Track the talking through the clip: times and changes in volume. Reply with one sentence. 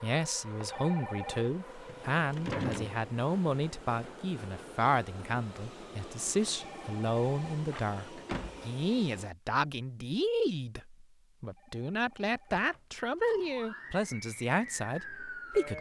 The talking can be heard from 0.0 to 15.7 s, at a steady volume.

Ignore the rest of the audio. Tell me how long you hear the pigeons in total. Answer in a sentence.
The pigeons can't be heard in this clip.